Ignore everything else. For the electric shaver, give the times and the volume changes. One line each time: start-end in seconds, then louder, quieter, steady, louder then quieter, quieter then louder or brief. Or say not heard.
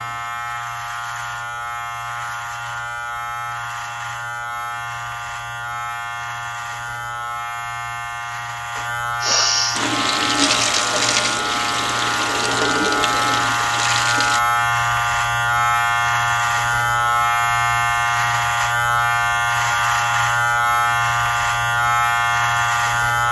0.0-23.2 louder.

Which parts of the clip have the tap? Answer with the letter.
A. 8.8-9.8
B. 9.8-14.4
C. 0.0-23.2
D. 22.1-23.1
B.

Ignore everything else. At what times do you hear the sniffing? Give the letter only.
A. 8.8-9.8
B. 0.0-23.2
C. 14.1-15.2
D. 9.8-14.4
A.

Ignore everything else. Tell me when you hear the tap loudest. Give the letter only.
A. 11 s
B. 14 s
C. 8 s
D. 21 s
A.